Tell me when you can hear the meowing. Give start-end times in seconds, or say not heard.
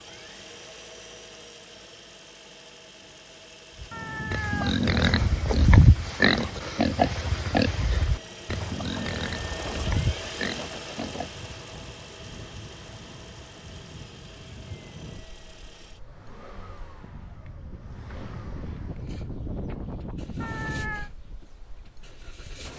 3.9-5.5, 20.4-21.1.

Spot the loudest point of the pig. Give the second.
6 s.